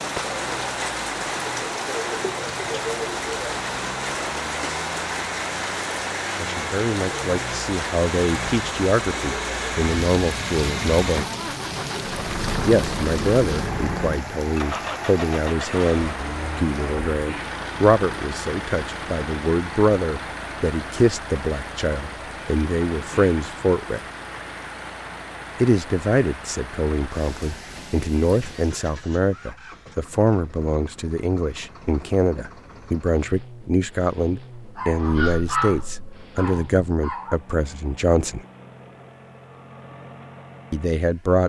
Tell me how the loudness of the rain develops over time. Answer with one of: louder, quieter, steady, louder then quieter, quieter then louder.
quieter.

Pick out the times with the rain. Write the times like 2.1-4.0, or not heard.
0.0-28.8.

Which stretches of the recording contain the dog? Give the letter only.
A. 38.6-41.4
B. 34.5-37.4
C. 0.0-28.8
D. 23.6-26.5
B.